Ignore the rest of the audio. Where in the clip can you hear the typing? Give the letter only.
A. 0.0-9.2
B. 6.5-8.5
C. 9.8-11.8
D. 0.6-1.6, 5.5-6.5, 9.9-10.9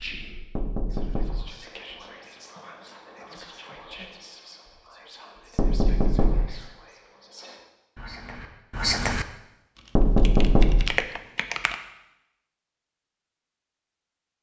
C.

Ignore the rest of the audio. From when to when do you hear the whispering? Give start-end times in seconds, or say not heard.
0.0-9.2.